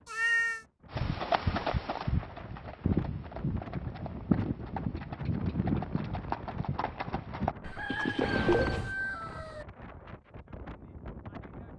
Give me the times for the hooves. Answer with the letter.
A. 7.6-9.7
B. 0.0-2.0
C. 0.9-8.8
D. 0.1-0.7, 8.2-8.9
C.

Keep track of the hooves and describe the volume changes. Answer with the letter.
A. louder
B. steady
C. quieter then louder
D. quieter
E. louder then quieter
B.